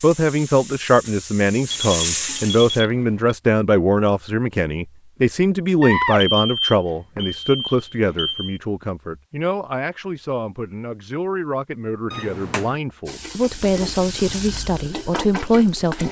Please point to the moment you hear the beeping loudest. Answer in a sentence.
The volume of the beeping peaks at 6 seconds.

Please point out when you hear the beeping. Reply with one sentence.
You can hear the beeping from 1.7 to 3.4 s, from 5.8 to 8.6 s and from 12.1 to 12.7 s.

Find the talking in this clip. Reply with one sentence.
The talking can be heard from 0.0 to 16.0 s.